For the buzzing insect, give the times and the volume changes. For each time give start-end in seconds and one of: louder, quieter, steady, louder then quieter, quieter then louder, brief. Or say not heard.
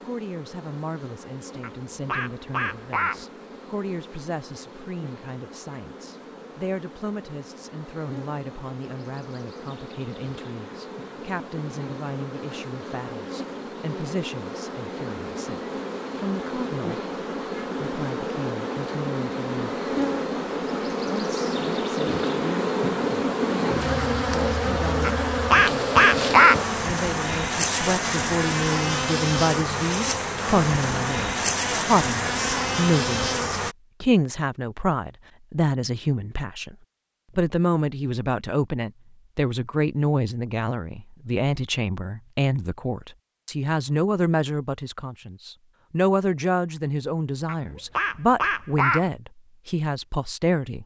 0.0-33.8 louder.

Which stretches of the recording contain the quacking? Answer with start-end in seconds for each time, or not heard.
1.6-3.2, 25.0-26.6, 47.5-49.1.